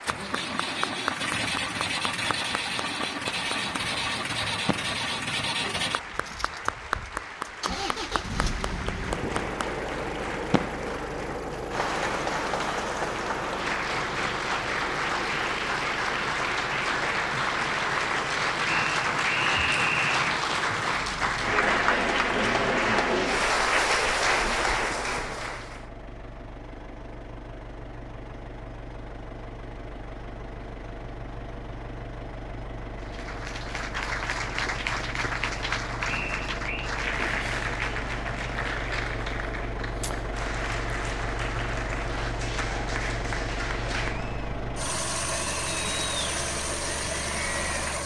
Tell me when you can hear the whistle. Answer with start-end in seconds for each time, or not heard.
18.6-20.2, 36.0-37.0.